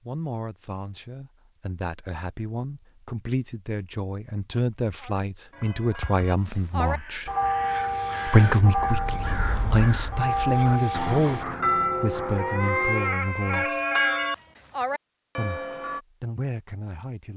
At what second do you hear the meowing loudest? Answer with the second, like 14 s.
13 s.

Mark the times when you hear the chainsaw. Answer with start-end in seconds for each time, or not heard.
not heard.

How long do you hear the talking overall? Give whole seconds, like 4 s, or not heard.
15 s.